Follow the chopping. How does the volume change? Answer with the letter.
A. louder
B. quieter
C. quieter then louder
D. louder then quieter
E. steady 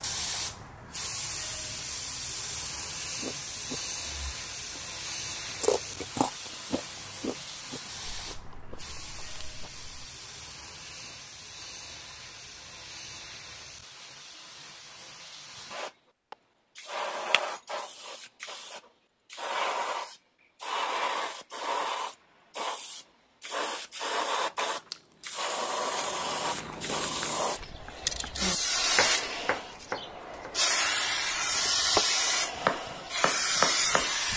C.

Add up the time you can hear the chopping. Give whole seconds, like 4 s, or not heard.
6 s.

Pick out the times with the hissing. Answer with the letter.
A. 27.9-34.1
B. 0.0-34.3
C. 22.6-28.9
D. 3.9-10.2
B.